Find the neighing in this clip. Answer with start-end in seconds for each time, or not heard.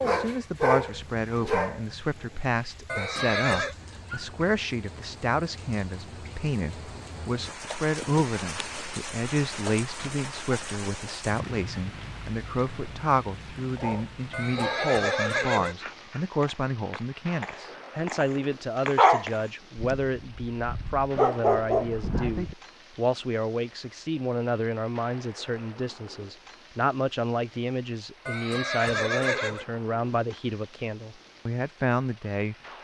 2.9-3.8, 14.3-15.8, 28.2-29.6.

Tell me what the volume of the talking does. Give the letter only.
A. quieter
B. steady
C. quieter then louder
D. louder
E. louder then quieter
B.